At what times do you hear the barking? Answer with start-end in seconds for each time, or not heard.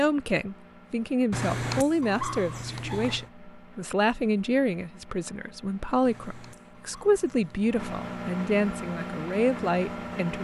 1.3-3.3, 6.0-8.2.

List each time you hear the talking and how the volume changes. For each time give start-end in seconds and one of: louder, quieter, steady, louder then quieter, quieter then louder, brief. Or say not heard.
0.0-10.3 steady.